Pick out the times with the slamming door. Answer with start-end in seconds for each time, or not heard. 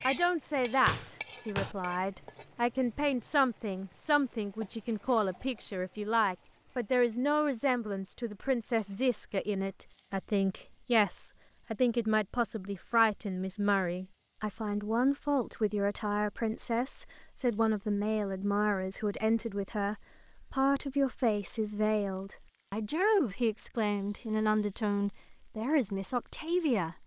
0.8-1.8.